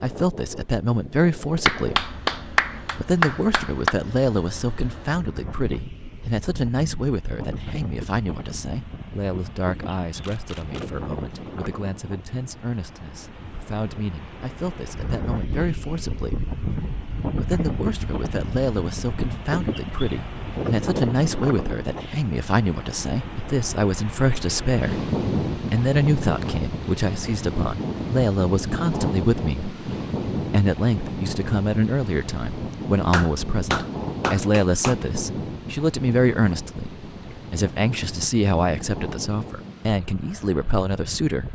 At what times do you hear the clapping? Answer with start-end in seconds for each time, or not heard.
1.6-4.0, 33.1-35.0.